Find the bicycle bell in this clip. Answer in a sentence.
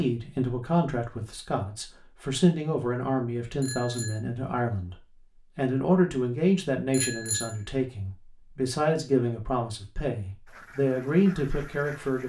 The bicycle bell can be heard from 3.6 to 4.2 s and from 6.9 to 7.5 s.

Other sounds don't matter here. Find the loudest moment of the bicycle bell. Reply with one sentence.
The loudest moment of the bicycle bell is at 7 seconds.